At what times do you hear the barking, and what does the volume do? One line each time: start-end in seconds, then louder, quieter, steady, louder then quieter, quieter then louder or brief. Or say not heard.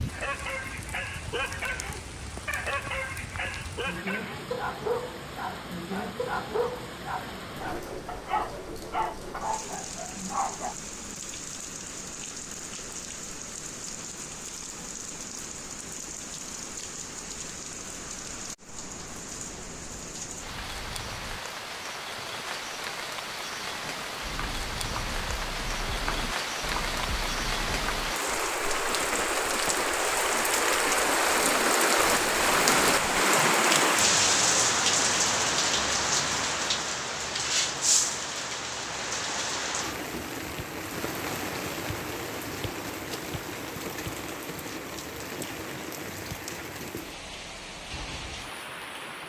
0.1-10.8 steady.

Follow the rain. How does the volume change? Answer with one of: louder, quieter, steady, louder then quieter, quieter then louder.
louder then quieter.